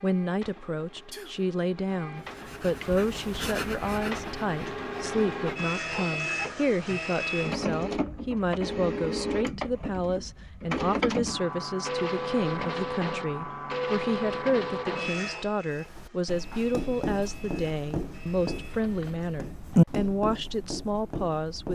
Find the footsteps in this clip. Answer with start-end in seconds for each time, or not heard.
not heard.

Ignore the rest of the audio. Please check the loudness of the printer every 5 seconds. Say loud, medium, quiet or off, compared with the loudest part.
medium, loud, loud, medium, off.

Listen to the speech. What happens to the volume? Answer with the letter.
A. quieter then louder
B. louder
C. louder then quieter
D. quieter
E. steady
E.